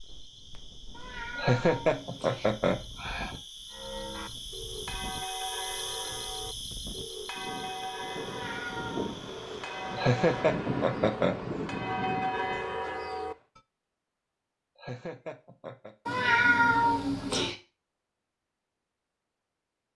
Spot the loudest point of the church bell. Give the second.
12 s.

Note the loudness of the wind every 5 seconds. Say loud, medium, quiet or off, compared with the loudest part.
quiet, medium, loud, off.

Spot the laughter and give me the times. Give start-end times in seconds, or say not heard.
1.4-3.4, 9.9-11.3, 14.8-15.9.